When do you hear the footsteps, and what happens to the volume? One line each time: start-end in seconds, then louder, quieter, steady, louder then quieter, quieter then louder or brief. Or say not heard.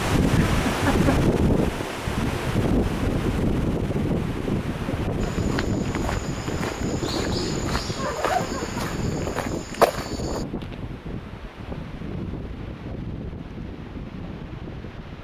5.2-10.4 louder.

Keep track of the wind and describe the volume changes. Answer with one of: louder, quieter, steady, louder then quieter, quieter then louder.
quieter.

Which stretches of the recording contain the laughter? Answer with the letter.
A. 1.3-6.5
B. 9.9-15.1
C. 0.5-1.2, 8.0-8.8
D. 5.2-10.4
C.